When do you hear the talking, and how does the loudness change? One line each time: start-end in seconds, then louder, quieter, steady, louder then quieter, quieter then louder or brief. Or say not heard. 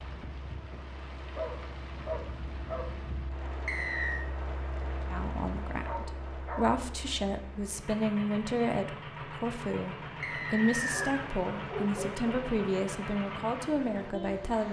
5.0-14.6 steady.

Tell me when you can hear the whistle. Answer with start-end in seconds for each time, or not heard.
3.6-4.2, 10.2-11.2.